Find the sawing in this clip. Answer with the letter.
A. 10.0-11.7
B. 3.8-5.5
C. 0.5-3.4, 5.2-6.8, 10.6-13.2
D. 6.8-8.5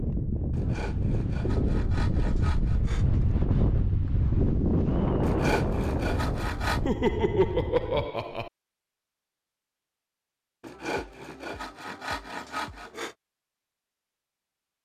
C.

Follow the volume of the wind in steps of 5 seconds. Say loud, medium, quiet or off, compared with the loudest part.
loud, loud, off.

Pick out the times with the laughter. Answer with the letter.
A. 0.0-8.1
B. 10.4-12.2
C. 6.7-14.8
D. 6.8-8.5
D.